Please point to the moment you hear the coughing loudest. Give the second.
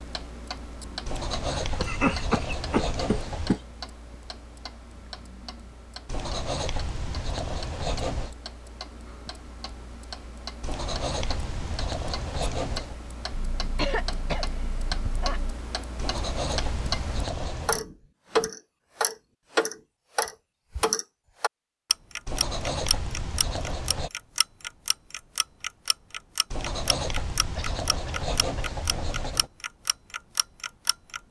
2 s.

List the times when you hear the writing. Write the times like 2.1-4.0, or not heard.
1.1-3.6, 6.0-8.3, 10.6-12.9, 15.9-17.8, 22.2-24.1, 26.5-29.5.